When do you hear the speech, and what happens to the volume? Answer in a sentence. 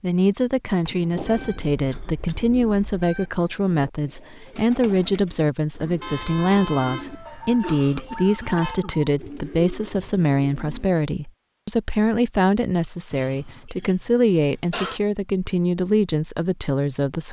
You can hear the speech from 0.0 to 17.2 s, at a steady volume.